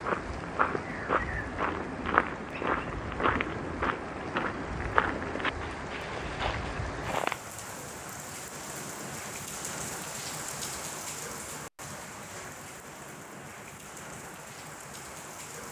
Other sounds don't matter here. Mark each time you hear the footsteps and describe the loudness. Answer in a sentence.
The footsteps can be heard from 0.0 to 7.4 s, getting quieter.